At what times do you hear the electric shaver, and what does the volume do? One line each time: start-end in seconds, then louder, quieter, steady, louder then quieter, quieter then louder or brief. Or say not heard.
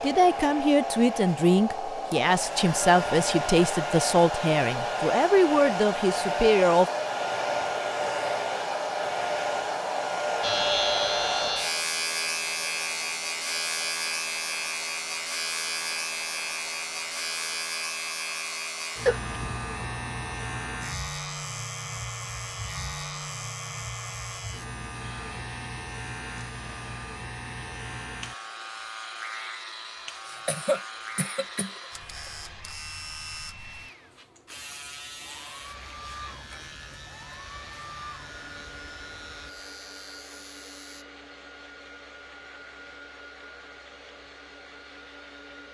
10.4-41.0 quieter.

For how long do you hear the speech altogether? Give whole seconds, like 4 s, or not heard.
7 s.